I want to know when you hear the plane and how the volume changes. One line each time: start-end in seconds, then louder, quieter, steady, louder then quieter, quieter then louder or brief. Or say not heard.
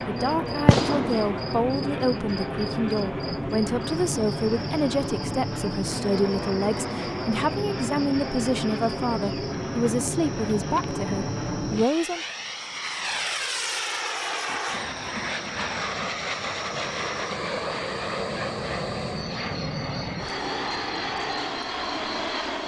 0.0-22.6 steady.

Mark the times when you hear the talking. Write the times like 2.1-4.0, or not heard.
0.1-12.2.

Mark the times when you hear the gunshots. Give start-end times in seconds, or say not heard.
0.7-1.3.